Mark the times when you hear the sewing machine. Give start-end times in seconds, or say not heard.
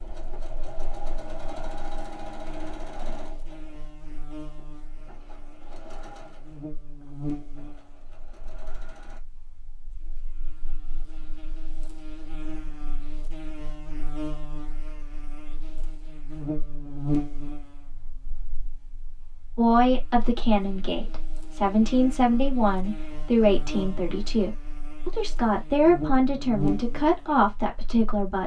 0.0-9.2.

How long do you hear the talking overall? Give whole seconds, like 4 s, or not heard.
9 s.